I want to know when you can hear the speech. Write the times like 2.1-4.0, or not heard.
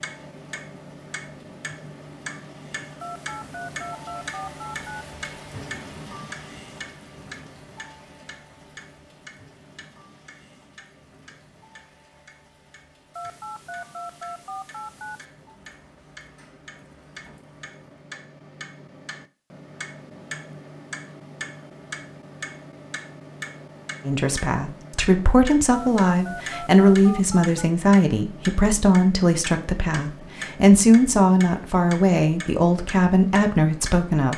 24.1-34.3.